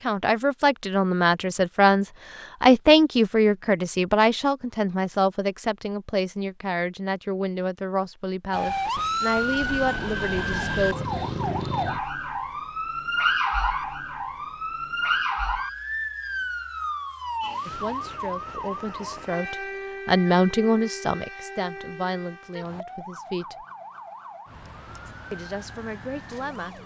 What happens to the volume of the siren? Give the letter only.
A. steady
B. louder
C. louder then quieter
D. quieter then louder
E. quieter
E.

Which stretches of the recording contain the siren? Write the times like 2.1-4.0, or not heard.
8.5-26.8.